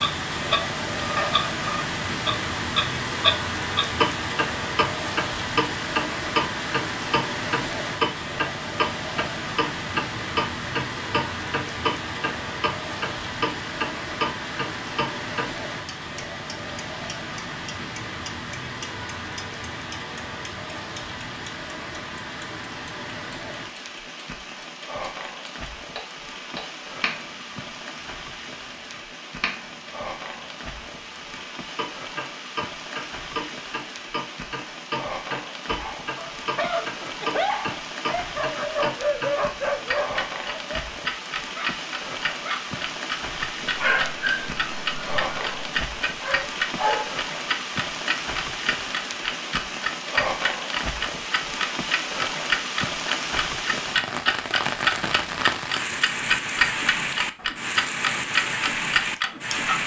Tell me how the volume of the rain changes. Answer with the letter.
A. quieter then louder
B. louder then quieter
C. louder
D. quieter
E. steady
A.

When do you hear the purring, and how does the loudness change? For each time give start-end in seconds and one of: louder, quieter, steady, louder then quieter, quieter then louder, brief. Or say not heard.
not heard.